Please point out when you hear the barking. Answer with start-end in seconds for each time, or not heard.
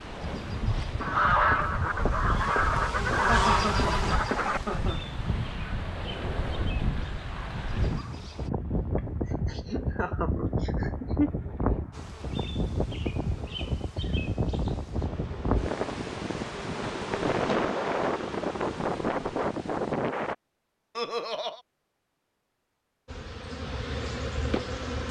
not heard.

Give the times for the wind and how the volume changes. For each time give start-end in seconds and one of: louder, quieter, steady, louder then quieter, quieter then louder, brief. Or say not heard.
0.0-20.4 louder.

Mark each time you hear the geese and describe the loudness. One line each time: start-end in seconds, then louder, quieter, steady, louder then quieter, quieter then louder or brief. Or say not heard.
1.0-8.2 quieter.